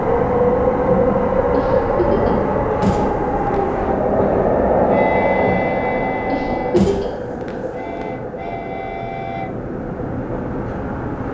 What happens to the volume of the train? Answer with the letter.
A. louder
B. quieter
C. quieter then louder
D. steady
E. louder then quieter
B.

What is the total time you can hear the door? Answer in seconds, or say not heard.
2 s.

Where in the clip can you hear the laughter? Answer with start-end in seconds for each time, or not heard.
1.5-2.5, 6.2-7.2.